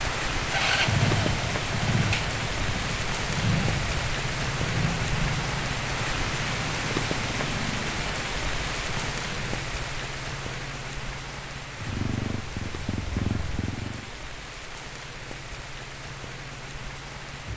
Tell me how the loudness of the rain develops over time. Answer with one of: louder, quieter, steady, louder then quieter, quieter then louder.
quieter.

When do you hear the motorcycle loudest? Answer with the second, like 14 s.
1 s.